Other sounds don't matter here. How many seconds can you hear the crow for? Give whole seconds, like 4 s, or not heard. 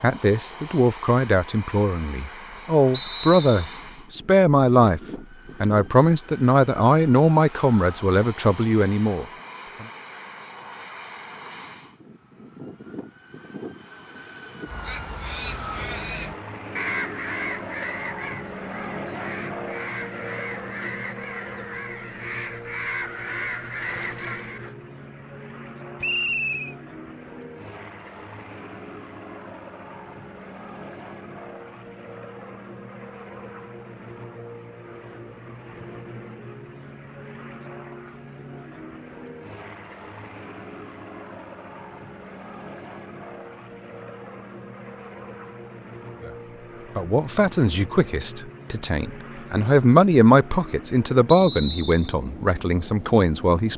10 s.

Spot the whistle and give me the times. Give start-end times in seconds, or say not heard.
2.9-3.8, 26.0-26.8, 51.2-52.1.